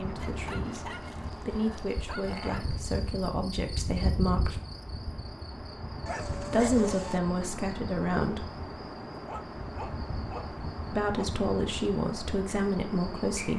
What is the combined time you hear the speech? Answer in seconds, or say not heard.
9 s.